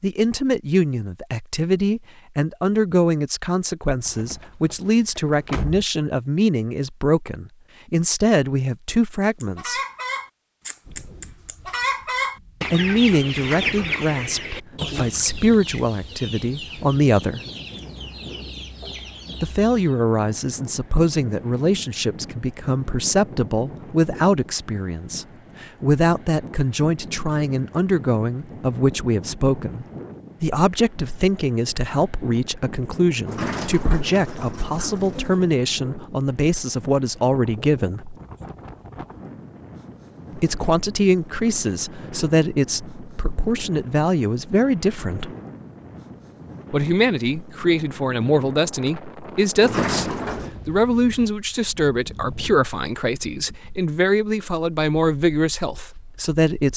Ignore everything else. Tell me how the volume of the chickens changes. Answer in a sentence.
The volume of the chickens goes up, then down.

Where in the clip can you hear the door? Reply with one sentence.
You can hear the door from 4.0 to 5.8 s, from 33.2 to 35.5 s and from 49.6 to 50.5 s.